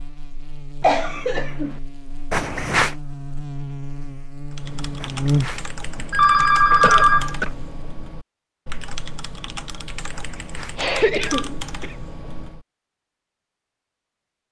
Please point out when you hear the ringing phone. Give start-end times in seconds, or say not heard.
2.3-3.0, 5.0-7.5, 10.3-11.5.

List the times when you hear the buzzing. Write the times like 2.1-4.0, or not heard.
0.0-7.8.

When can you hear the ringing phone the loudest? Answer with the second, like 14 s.
7 s.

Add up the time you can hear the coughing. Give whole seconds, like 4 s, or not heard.
3 s.